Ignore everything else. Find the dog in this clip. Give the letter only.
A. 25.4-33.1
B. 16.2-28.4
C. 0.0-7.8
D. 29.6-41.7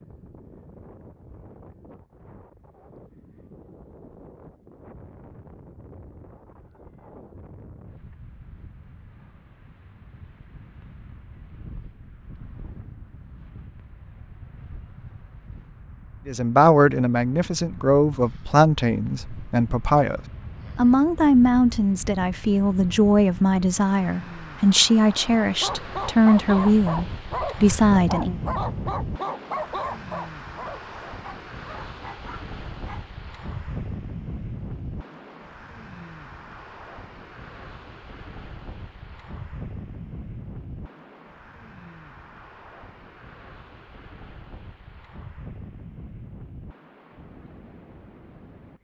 A.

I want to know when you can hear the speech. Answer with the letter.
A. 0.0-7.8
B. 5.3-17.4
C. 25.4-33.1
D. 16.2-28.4
D.